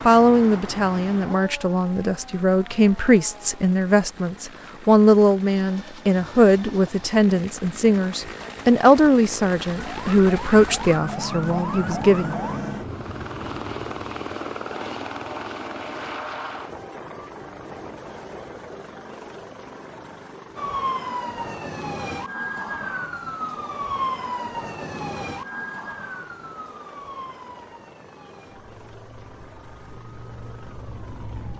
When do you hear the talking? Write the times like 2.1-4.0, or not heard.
0.0-12.4.